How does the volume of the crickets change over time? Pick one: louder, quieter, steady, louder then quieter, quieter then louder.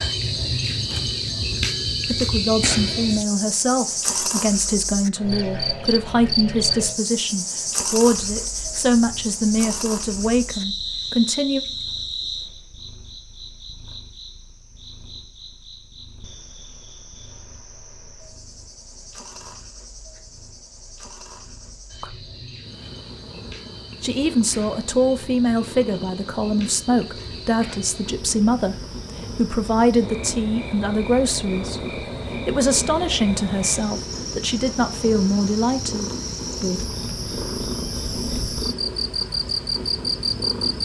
quieter then louder.